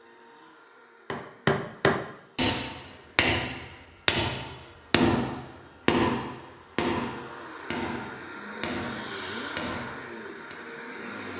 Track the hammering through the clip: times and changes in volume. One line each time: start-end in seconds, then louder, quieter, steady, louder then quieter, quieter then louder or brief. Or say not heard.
1.1-10.6 quieter.